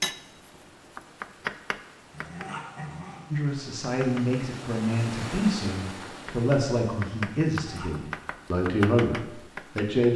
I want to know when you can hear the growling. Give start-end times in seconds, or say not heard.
2.1-3.3, 7.5-8.2.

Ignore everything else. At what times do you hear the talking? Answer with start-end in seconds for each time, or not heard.
3.3-10.1.